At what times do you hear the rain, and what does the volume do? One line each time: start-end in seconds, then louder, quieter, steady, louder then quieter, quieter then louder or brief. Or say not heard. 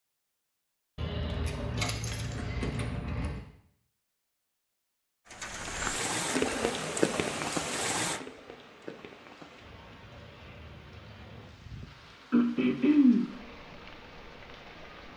5.3-15.1 quieter.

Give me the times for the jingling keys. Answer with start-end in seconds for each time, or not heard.
0.9-3.4.